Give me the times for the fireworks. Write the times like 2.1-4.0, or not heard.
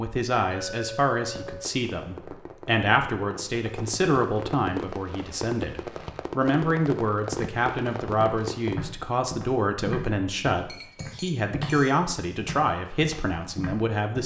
1.2-8.8.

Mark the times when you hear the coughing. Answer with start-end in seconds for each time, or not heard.
not heard.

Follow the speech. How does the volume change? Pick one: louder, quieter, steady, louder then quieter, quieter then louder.
steady.